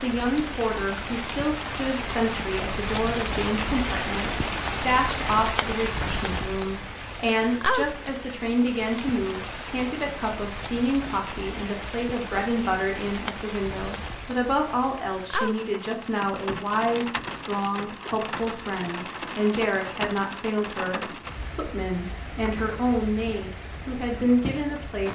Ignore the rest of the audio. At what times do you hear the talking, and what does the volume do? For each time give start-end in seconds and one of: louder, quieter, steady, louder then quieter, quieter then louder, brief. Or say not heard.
0.0-25.1 steady.